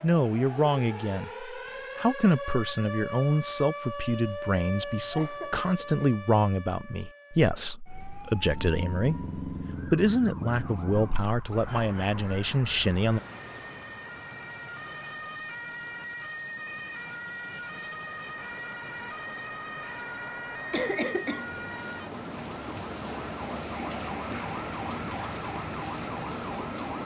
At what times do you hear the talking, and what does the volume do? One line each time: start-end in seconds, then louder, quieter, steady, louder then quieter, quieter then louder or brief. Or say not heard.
0.0-13.2 steady.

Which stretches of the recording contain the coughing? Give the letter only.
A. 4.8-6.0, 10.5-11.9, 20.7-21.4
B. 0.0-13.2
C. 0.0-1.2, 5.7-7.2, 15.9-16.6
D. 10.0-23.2
A.